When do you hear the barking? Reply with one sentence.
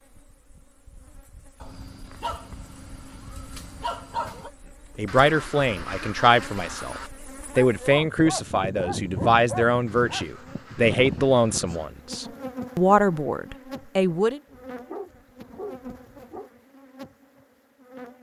You can hear the barking from 1.6 to 4.5 s, from 7.5 to 10.2 s and from 14.4 to 16.5 s.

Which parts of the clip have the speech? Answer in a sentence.
You can hear the speech from 5.0 to 14.4 s.